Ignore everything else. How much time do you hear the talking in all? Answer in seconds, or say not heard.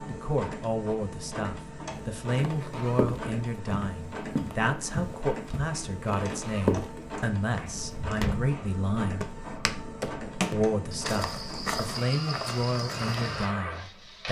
13 s.